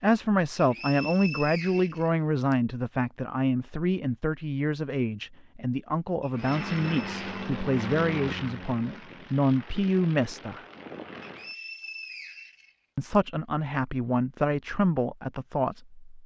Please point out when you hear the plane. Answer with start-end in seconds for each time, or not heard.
6.3-11.6.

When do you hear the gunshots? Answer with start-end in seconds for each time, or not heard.
not heard.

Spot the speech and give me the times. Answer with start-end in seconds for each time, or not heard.
0.0-10.6, 12.9-16.0.